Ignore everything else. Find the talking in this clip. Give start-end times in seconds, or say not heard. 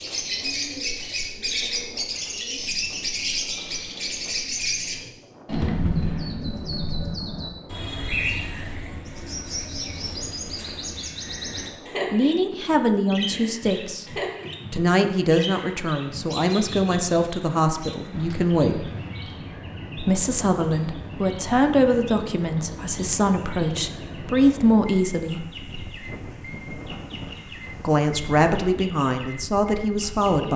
12.1-14.1, 14.7-18.9, 19.9-25.4, 27.8-30.5.